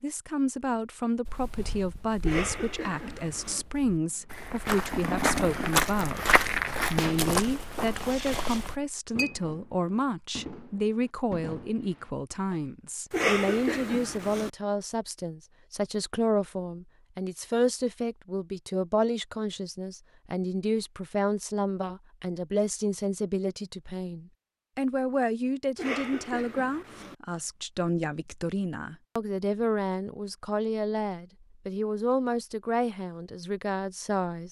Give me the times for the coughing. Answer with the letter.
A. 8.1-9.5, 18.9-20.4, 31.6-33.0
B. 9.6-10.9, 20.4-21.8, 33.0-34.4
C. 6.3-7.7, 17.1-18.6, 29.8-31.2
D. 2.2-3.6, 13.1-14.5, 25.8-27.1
D.